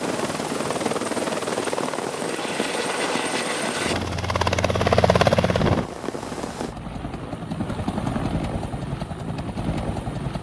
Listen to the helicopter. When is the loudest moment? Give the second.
5 s.